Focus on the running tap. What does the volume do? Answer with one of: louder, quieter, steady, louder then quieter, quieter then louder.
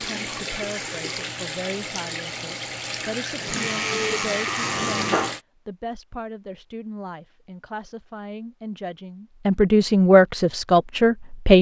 steady.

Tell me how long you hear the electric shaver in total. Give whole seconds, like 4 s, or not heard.
2 s.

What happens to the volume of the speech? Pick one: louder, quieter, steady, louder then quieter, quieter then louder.
louder.